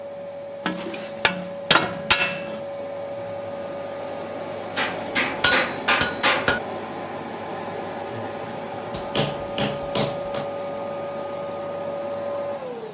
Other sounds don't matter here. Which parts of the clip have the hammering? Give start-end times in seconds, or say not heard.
0.7-2.6, 4.8-6.6, 8.9-10.4.